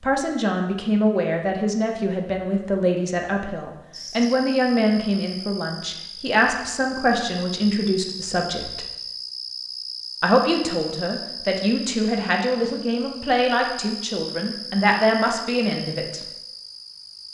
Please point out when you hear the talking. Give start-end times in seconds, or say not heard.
0.0-8.8, 10.2-16.2.